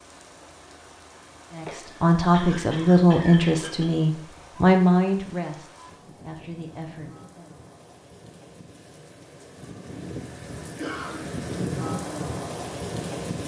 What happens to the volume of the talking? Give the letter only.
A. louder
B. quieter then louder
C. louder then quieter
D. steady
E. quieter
E.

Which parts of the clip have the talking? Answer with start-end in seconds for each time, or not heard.
1.6-7.5.